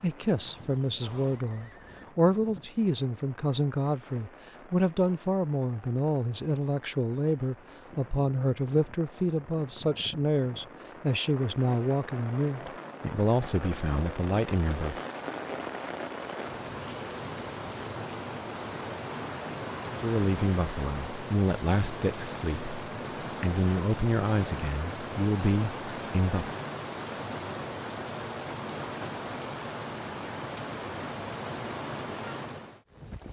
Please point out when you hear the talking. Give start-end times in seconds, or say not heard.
0.0-15.0, 19.9-26.5.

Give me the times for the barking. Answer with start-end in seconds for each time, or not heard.
not heard.